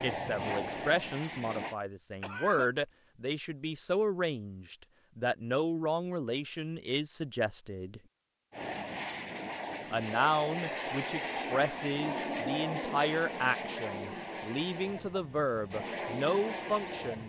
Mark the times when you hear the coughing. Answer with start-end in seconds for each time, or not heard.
2.2-2.7.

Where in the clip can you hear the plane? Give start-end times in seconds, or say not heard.
0.0-1.8, 8.5-17.2.